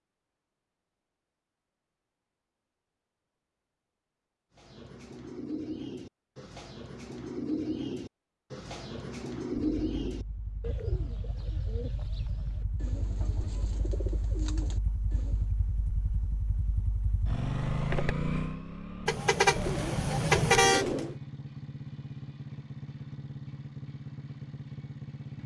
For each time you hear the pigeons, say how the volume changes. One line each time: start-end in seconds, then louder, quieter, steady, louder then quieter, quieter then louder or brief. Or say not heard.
4.5-15.5 louder then quieter
19.4-21.1 brief.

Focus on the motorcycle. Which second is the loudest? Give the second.
18 s.